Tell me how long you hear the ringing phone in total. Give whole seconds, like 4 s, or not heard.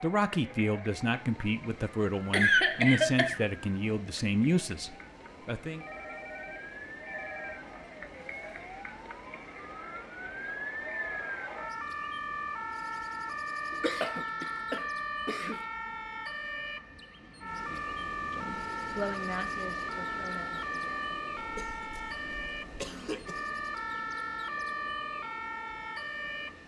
2 s.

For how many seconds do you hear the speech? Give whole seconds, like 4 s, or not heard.
10 s.